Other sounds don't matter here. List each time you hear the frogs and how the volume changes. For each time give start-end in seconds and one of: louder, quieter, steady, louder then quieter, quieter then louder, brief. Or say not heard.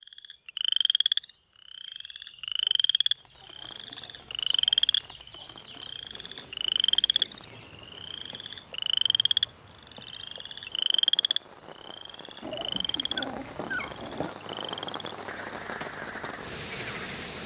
0.1-17.4 quieter.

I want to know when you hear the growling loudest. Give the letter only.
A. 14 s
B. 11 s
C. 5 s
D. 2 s
A.